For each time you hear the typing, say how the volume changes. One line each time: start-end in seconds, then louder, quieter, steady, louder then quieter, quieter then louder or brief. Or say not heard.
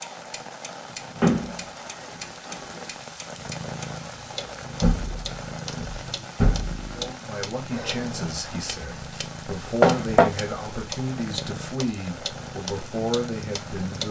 not heard.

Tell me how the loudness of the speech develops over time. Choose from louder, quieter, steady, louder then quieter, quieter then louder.
steady.